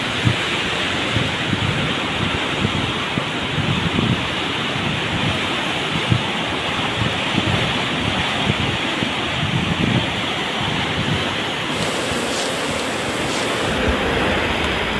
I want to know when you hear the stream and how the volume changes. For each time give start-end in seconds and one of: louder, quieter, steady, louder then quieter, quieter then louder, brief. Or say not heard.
0.0-14.9 steady.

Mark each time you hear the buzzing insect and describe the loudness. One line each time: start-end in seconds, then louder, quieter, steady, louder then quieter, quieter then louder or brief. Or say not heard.
0.0-14.9 steady.